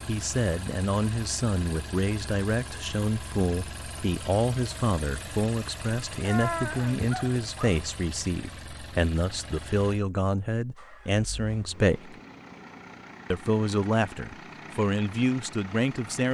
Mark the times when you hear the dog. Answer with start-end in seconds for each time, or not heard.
6.2-7.8.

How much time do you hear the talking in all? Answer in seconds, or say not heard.
15 s.